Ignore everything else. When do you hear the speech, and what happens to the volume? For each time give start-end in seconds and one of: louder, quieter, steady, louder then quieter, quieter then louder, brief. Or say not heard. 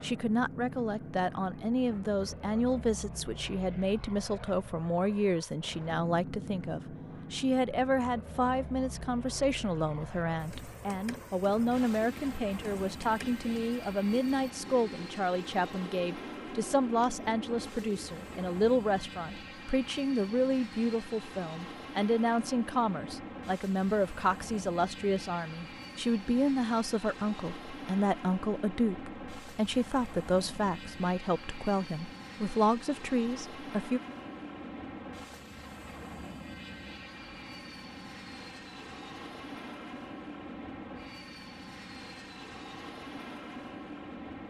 0.0-34.0 steady.